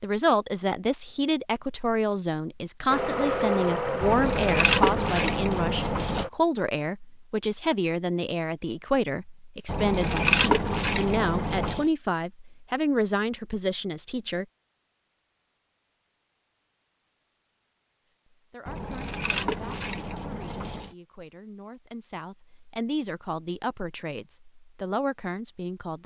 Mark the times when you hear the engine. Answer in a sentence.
The engine can be heard from 2.9 to 6.3 s.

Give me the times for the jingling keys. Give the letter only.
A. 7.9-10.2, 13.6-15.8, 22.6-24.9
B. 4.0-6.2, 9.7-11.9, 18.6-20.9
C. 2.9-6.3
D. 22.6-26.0
B.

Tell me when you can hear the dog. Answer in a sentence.
The dog can't be heard in this clip.